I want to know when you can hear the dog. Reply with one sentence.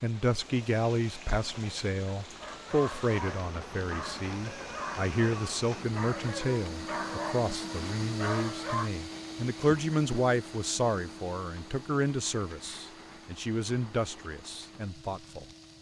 You can hear the dog from 2.4 to 8.9 s.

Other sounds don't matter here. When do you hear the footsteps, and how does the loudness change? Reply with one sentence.
You can't hear the footsteps here.